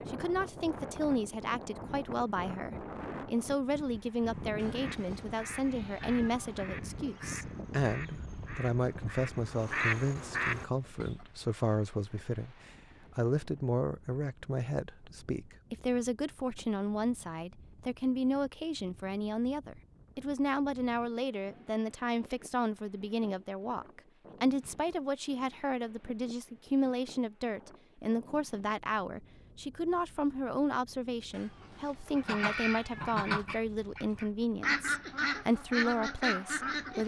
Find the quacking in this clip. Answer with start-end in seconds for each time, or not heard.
4.7-11.2, 32.1-37.0.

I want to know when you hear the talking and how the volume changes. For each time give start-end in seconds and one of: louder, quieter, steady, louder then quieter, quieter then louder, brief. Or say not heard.
0.1-37.0 steady.